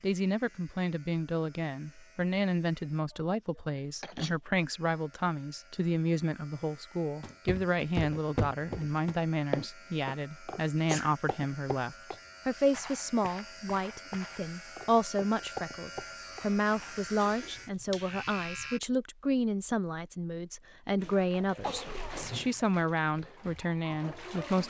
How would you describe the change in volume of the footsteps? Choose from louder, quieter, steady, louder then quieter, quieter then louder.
quieter then louder.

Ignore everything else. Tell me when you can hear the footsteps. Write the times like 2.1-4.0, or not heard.
7.2-16.9.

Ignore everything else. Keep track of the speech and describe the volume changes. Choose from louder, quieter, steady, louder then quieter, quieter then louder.
steady.